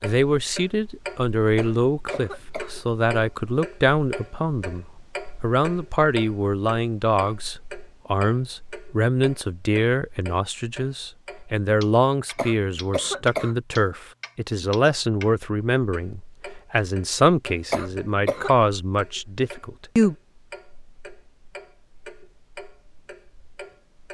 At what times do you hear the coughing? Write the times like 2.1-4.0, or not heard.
1.6-2.8, 12.3-13.6, 17.7-18.5.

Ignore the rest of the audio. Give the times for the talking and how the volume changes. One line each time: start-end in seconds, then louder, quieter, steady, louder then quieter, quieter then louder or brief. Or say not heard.
0.0-20.1 steady.